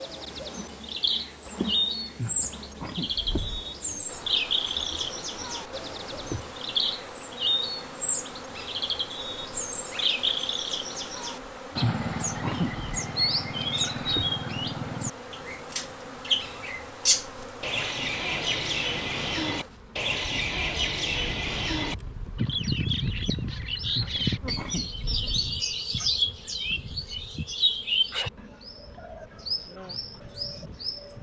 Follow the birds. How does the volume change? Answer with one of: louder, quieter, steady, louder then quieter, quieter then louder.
steady.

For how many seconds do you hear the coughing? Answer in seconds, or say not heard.
4 s.